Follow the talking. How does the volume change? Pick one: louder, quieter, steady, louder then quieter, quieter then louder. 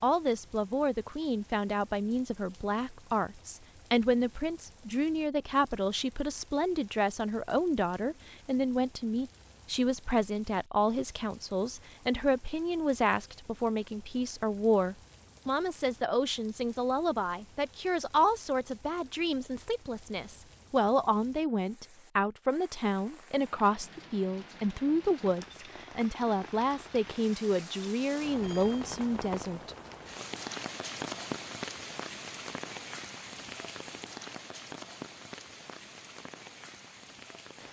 steady.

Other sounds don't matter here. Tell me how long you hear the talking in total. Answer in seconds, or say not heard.
30 s.